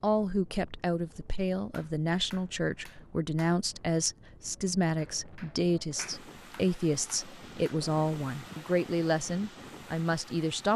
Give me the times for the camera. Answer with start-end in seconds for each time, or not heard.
not heard.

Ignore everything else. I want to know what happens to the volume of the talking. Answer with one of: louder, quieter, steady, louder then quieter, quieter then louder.
steady.